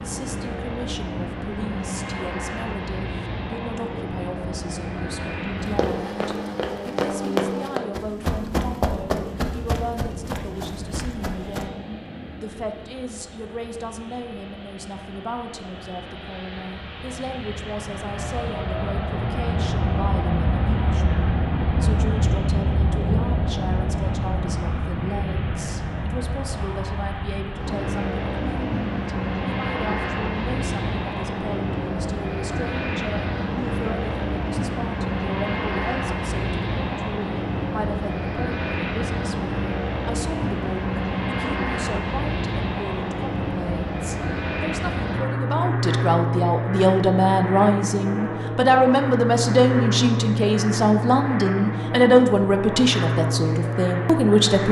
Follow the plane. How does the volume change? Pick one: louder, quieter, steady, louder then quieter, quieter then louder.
louder.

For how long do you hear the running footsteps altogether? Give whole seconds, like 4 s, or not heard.
6 s.